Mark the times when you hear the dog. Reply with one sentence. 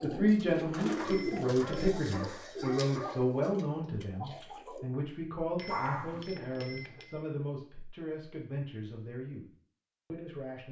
The dog can be heard from 0.8 to 3.5 s and from 5.7 to 6.2 s.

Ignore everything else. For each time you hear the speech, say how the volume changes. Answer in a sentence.
The speech can be heard from 0.0 to 9.4 s, getting quieter; and briefly from 10.1 to 10.6 s.